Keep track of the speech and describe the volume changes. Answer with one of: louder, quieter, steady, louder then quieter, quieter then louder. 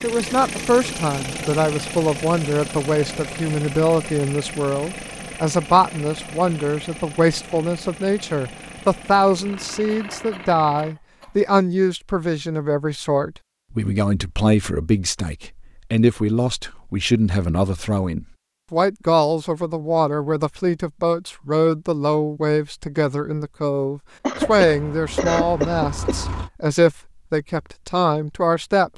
steady.